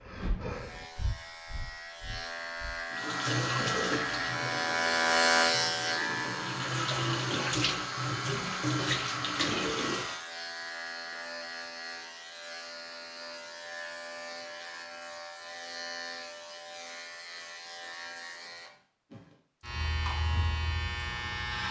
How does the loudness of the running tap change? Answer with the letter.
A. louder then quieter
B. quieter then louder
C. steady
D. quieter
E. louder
B.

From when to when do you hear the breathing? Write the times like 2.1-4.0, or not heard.
0.0-2.9.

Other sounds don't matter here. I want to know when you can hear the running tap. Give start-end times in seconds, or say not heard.
2.9-10.2.